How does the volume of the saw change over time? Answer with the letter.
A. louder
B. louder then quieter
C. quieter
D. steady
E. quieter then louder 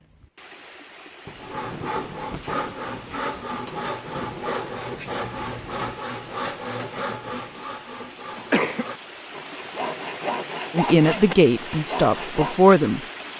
D.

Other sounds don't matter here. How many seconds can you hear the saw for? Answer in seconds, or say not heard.
11 s.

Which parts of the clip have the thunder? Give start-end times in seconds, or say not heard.
1.2-5.8.